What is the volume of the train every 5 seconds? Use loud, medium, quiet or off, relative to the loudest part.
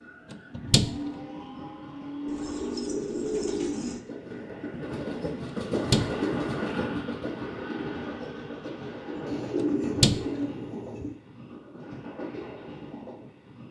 medium, loud, medium.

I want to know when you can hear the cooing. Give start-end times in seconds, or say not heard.
2.2-4.0, 9.2-11.2.